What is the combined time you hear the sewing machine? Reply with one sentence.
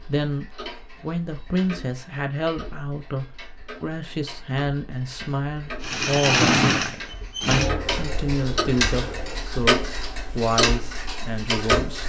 You can hear the sewing machine for 4 seconds altogether.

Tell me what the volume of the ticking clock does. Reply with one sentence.
The loudness of the ticking clock goes up.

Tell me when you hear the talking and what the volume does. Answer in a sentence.
You can hear the talking from 0.0 to 12.0 s, at a steady volume.